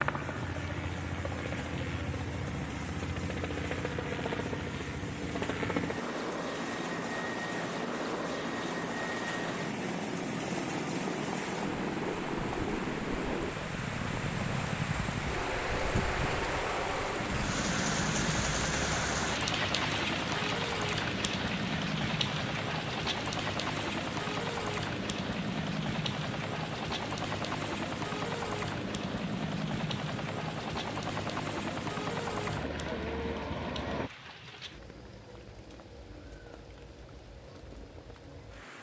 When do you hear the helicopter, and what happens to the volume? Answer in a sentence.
The helicopter can be heard from 0.0 to 34.1 s, at a steady volume.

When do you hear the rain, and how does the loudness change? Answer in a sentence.
You can hear the rain from 0.0 to 38.7 s, getting louder then quieter.